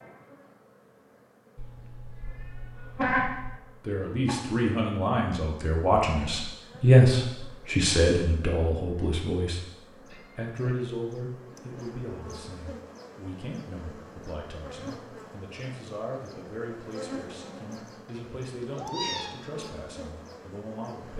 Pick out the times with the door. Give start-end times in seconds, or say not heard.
not heard.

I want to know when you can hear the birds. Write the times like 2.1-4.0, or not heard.
not heard.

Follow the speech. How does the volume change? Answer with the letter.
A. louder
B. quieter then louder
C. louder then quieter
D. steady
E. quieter
E.